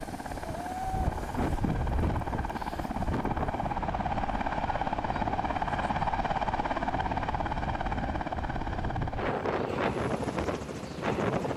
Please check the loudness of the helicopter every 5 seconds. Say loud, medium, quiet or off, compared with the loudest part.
loud, loud, medium.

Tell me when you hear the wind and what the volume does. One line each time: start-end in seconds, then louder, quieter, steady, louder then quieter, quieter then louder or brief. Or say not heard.
0.0-11.5 quieter then louder.